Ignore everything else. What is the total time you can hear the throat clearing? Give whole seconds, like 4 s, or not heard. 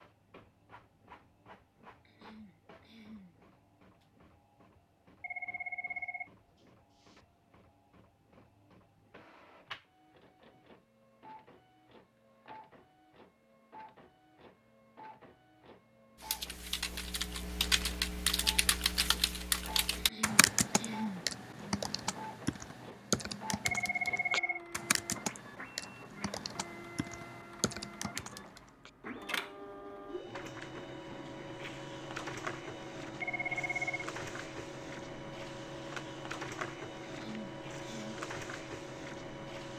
4 s.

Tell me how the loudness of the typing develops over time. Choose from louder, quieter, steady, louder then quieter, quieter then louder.
quieter.